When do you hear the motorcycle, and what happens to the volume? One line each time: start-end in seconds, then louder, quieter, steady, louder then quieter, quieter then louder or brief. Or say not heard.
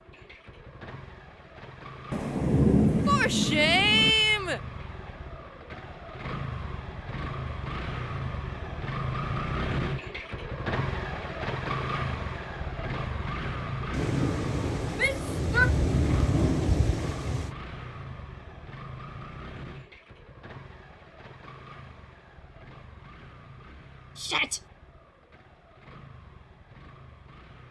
0.0-27.6 louder then quieter.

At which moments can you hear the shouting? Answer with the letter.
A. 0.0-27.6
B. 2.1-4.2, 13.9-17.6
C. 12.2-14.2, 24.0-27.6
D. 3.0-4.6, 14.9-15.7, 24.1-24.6
D.